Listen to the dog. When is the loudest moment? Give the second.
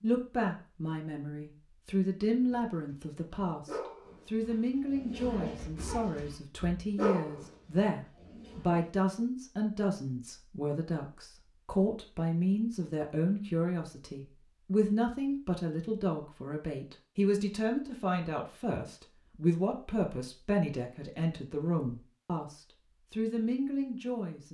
7 s.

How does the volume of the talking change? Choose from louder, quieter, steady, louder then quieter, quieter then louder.
steady.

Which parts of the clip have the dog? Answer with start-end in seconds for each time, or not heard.
2.4-8.9.